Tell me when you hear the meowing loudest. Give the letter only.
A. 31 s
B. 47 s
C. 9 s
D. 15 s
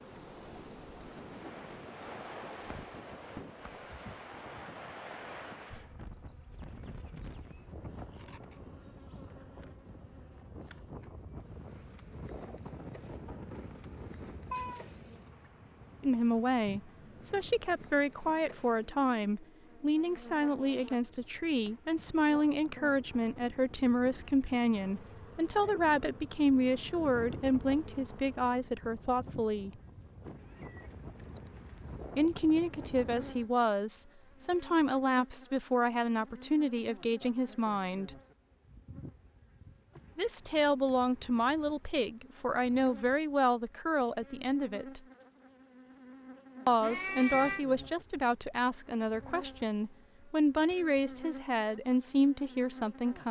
B.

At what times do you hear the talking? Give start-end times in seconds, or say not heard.
16.0-29.7, 32.1-38.1, 40.1-45.0, 46.6-53.2.